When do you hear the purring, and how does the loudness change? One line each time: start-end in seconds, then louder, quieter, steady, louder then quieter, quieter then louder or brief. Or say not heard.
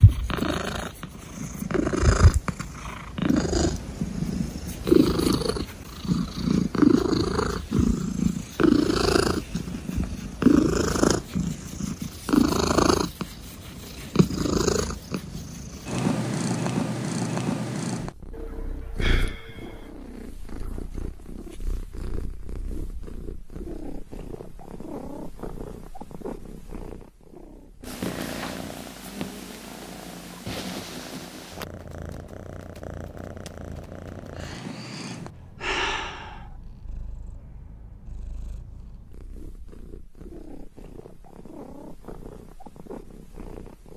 0.0-43.9 quieter.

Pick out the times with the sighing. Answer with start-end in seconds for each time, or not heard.
18.3-19.9, 34.4-36.5.